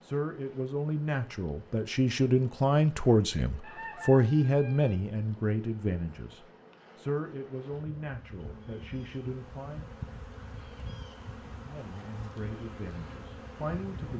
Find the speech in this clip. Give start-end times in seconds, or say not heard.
0.0-9.8, 11.6-14.1.